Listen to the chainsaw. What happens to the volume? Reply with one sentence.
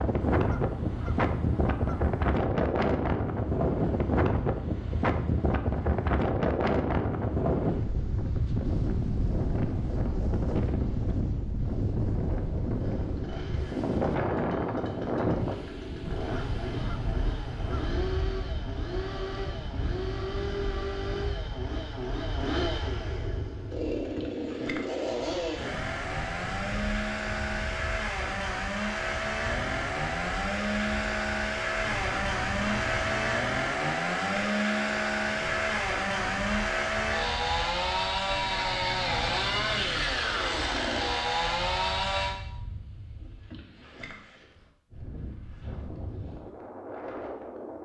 The loudness of the chainsaw goes up.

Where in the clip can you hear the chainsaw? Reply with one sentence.
The chainsaw can be heard from 12.8 to 42.4 s.